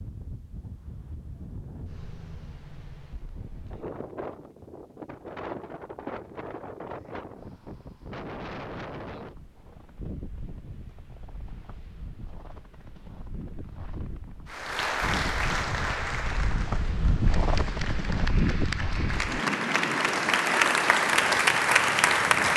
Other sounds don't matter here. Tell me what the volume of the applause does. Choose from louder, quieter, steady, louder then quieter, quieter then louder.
quieter then louder.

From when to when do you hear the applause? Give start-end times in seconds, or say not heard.
14.5-22.5.